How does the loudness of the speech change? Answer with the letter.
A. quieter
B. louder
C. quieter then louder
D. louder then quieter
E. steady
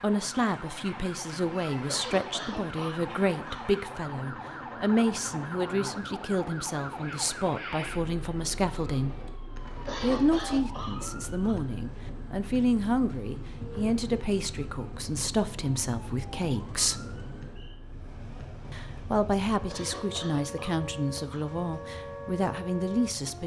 E.